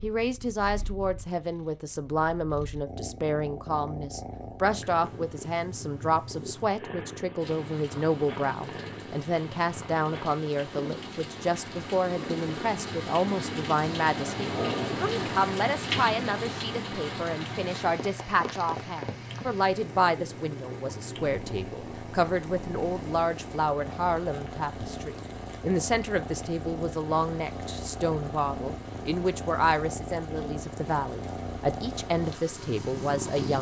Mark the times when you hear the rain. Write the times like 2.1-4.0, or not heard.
7.3-33.5.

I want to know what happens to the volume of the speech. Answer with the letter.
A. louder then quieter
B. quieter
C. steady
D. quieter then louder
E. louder
C.